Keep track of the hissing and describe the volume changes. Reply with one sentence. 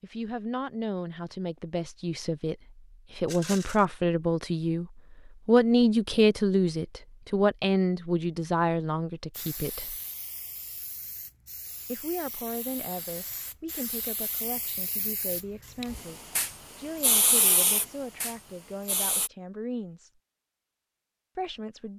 The volume of the hissing goes up.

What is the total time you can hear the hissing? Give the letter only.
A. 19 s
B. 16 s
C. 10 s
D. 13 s
C.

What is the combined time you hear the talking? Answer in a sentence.
The talking can be heard for 19 seconds in total.